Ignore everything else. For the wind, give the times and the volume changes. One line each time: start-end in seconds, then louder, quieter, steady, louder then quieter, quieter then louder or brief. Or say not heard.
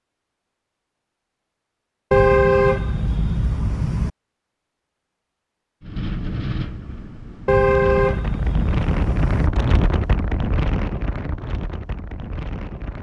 5.8-12.9 louder then quieter.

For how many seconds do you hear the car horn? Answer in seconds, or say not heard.
4 s.